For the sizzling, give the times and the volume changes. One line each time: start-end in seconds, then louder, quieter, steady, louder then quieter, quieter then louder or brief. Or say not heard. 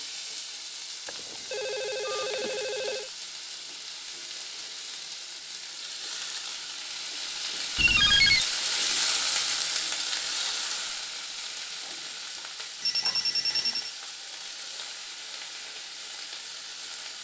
0.0-17.1 louder then quieter.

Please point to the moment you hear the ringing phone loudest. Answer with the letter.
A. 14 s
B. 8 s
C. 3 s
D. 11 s
B.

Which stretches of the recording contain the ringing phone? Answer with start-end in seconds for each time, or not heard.
1.1-3.1, 7.8-8.4, 12.8-13.9.